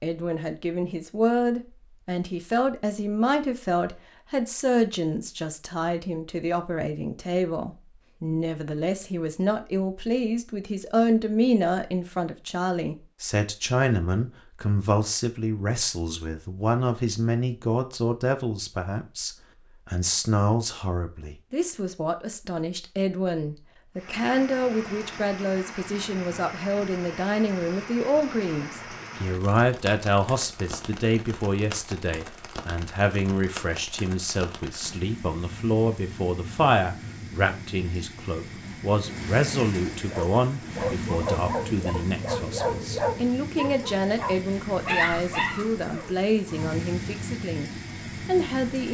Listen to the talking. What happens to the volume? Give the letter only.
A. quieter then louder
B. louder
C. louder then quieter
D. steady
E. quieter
D.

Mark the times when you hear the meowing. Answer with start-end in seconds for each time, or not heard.
not heard.